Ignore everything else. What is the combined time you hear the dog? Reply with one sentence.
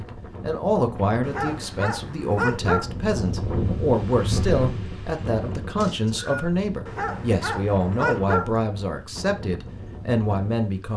You can hear the dog for 3 seconds altogether.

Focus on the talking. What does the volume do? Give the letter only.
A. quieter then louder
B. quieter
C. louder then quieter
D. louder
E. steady
E.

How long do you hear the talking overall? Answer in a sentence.
You can hear the talking for 11 seconds altogether.